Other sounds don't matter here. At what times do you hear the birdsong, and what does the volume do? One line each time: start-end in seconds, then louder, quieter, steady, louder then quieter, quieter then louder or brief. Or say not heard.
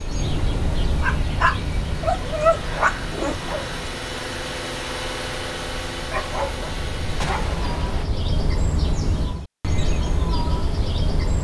0.0-11.3 quieter then louder.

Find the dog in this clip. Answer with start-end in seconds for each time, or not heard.
1.0-3.9, 6.0-7.5.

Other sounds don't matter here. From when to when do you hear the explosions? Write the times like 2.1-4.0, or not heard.
7.2-8.1.